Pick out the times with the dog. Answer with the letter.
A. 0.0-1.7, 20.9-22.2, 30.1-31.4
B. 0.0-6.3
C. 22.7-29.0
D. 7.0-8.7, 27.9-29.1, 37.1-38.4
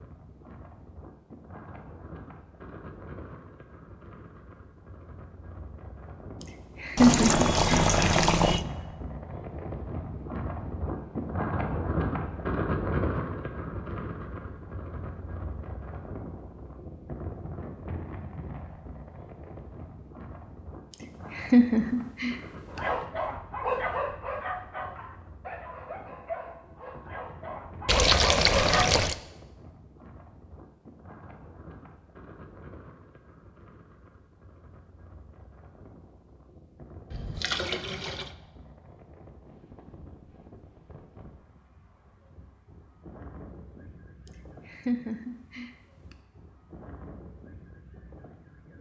C.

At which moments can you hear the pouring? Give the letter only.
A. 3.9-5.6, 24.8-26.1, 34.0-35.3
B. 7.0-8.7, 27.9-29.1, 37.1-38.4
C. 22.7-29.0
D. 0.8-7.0
B.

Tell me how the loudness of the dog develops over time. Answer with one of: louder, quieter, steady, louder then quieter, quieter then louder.
quieter then louder.